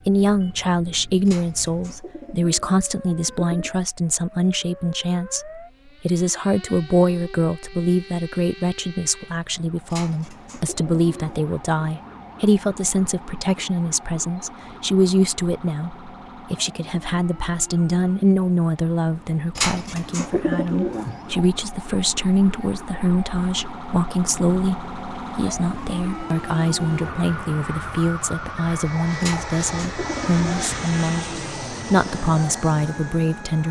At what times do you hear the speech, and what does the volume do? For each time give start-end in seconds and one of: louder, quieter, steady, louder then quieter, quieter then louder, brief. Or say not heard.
0.1-33.6 steady.